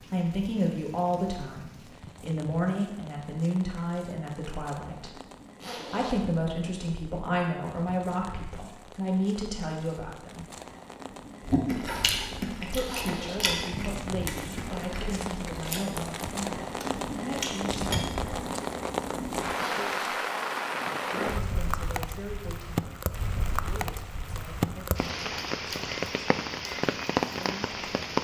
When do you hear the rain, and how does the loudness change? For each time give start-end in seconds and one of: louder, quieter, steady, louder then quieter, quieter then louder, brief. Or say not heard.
0.0-28.1 louder.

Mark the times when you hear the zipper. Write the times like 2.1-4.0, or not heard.
5.6-6.2, 12.8-13.4, 19.6-20.2.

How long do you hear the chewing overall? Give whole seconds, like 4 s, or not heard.
7 s.